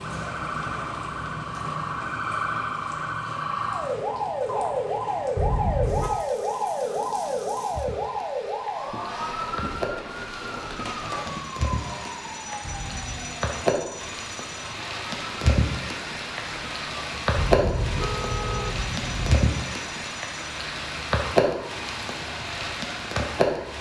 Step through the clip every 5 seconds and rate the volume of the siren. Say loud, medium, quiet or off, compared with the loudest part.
loud, loud, medium, quiet, quiet.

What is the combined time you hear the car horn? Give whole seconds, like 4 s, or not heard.
4 s.